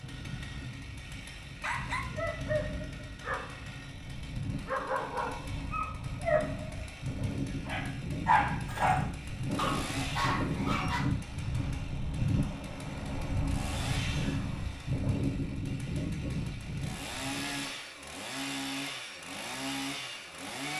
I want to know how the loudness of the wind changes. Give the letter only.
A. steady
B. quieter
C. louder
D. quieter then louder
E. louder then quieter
C.